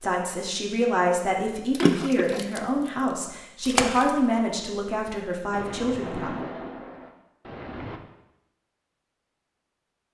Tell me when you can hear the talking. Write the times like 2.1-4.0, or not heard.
0.0-6.3.